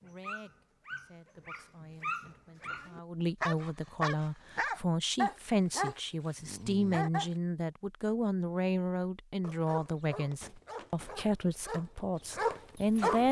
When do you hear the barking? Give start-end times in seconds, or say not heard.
0.0-7.3, 9.4-13.2.